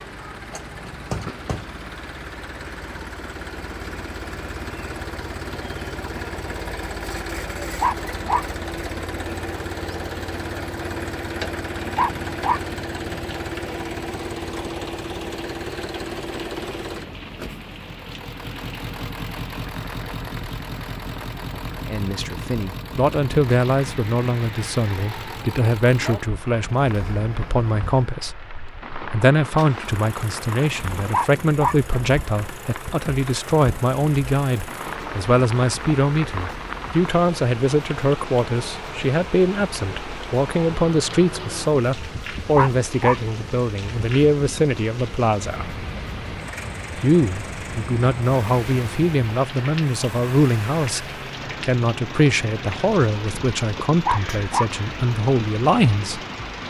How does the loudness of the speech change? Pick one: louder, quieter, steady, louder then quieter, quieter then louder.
steady.